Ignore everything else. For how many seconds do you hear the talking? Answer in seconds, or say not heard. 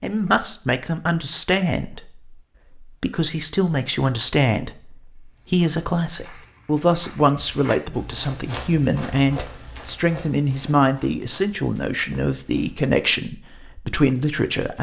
15 s.